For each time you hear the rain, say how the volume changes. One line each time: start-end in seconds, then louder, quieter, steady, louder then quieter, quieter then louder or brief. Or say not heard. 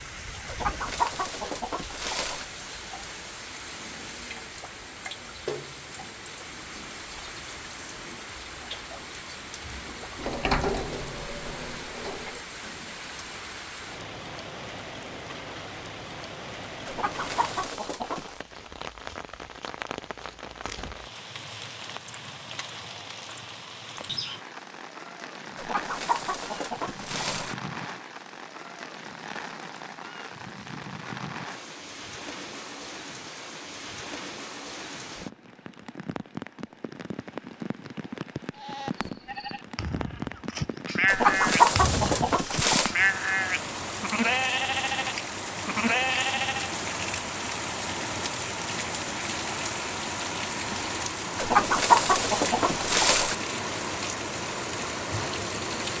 0.0-55.9 louder.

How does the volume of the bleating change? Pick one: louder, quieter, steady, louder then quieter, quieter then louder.
louder.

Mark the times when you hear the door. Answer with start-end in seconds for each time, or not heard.
10.2-12.4.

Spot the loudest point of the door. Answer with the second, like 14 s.
11 s.